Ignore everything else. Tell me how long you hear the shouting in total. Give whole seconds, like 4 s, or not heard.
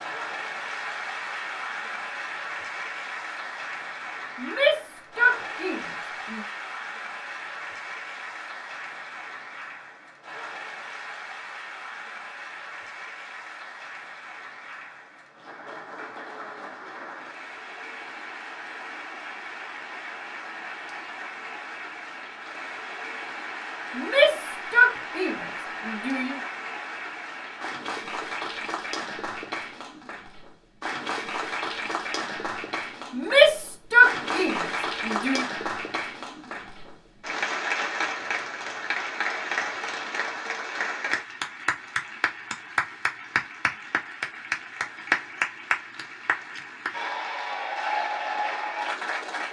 7 s.